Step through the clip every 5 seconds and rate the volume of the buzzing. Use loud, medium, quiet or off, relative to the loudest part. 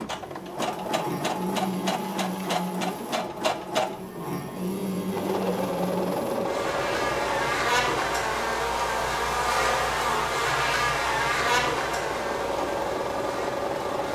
medium, loud, loud.